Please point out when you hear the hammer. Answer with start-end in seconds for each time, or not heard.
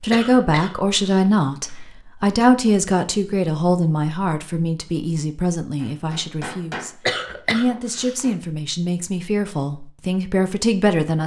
5.8-8.4.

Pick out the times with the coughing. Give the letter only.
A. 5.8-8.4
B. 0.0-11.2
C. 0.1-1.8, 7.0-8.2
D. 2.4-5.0
C.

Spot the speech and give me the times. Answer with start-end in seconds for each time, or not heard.
0.0-11.2.